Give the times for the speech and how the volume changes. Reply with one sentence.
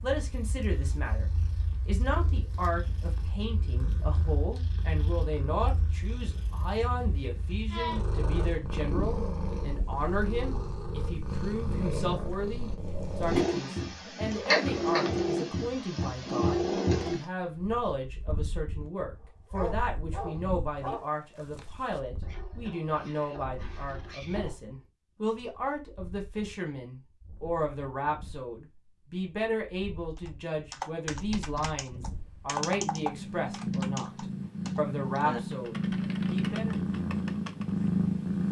The speech can be heard from 0.0 to 36.8 s, at a steady volume.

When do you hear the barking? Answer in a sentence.
The barking can be heard from 19.5 to 24.6 s.